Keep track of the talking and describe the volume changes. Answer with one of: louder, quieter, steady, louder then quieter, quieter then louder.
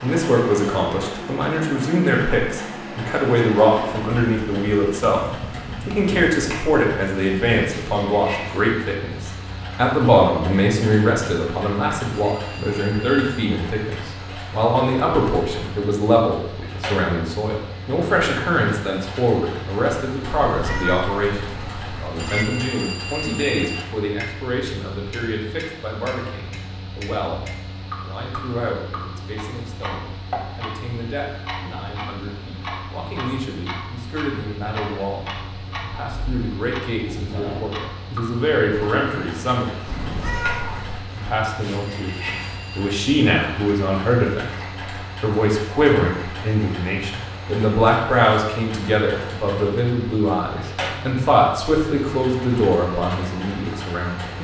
quieter then louder.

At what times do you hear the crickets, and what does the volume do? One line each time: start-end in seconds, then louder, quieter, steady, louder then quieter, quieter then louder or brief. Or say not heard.
not heard.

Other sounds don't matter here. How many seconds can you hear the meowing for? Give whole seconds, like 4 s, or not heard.
3 s.